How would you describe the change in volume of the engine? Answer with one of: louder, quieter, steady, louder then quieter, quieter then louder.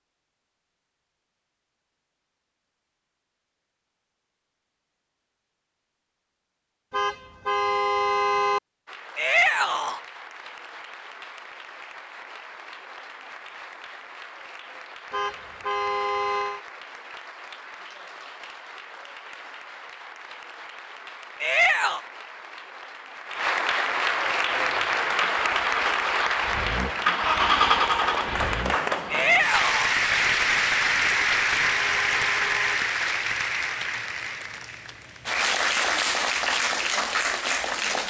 louder then quieter.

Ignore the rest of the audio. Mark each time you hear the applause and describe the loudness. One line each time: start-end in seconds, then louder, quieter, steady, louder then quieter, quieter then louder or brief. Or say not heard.
8.8-38.0 louder.